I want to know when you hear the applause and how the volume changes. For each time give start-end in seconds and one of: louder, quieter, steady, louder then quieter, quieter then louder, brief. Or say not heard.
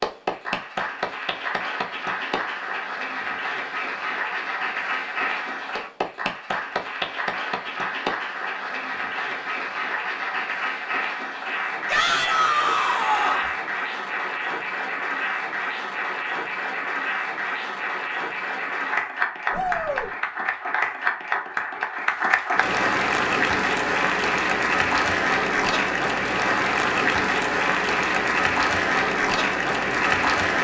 0.0-30.5 louder.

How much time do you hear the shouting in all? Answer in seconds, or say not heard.
2 s.